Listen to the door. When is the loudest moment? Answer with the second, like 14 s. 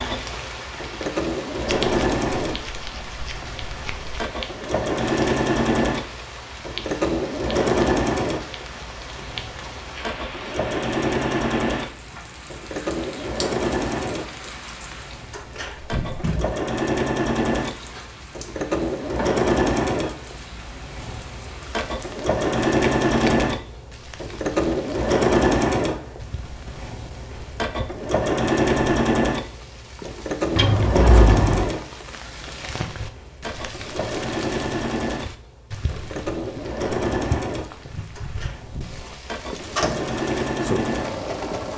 40 s.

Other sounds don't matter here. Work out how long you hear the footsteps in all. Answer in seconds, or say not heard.
not heard.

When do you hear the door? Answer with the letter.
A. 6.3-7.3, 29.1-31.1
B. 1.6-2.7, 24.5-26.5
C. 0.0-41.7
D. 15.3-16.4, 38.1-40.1
D.